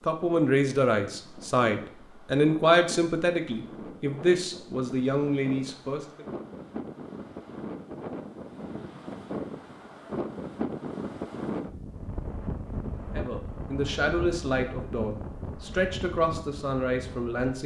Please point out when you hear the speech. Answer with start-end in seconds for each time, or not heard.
0.1-6.2, 13.2-17.6.